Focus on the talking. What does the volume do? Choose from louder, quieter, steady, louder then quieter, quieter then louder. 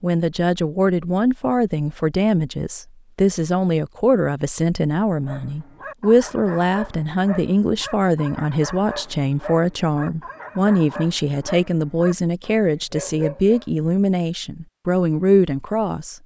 steady.